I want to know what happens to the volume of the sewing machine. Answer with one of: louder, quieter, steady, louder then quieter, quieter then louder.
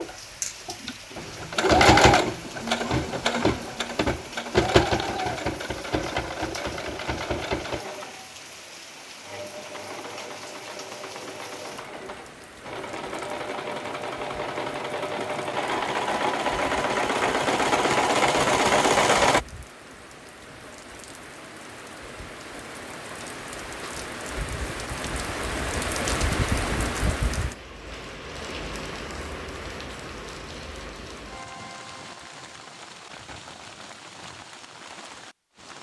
quieter then louder.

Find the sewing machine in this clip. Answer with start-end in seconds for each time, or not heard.
0.0-19.4.